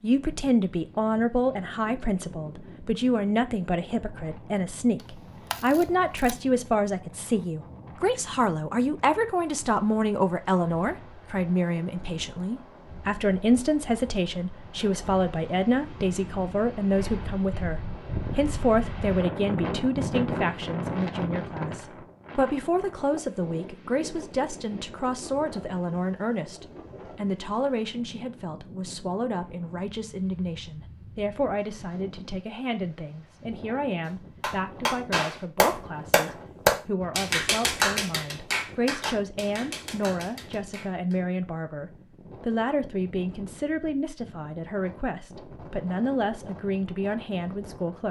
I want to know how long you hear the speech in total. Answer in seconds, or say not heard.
48 s.